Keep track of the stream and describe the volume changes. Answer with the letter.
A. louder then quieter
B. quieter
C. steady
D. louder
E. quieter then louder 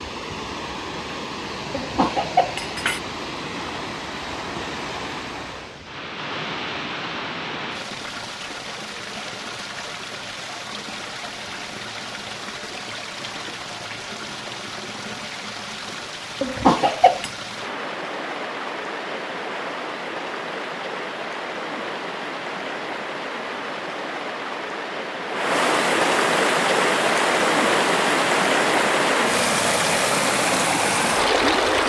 D.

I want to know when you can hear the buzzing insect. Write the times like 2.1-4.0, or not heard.
not heard.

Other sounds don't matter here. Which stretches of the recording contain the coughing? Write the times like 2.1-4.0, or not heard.
1.7-3.0, 16.4-17.3.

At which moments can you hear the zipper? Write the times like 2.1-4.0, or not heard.
not heard.